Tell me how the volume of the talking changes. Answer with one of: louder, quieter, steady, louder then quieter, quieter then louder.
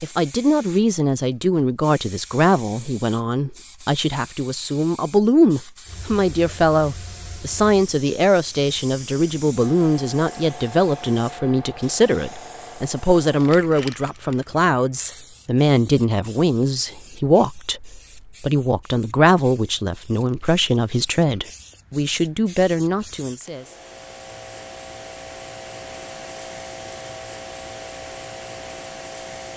steady.